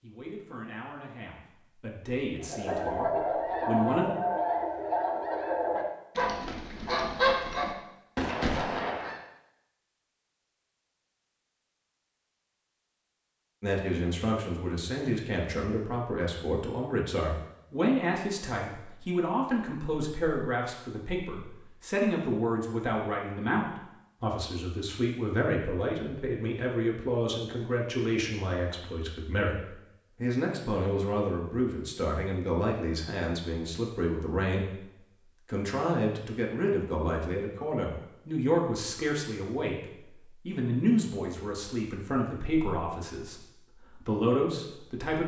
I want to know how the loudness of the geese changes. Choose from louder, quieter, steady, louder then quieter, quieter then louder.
steady.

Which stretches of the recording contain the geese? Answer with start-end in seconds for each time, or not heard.
2.4-9.2.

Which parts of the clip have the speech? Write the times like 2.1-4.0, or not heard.
0.0-4.1, 13.6-45.2.